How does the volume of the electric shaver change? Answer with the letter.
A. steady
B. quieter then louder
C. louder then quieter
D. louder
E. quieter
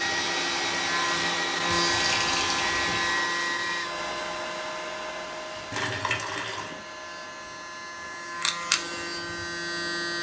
B.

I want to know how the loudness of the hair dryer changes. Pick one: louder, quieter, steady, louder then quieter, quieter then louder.
quieter.